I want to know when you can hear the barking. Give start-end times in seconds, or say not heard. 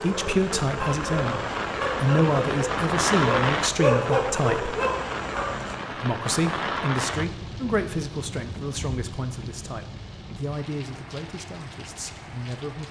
0.0-5.8.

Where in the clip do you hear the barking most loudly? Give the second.
4 s.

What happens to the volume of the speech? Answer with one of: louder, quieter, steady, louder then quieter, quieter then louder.
quieter.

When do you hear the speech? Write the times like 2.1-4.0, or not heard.
0.0-4.8, 6.0-12.8.